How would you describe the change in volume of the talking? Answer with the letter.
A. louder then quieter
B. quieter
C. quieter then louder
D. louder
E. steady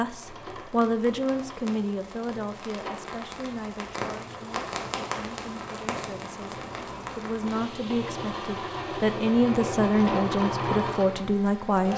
C.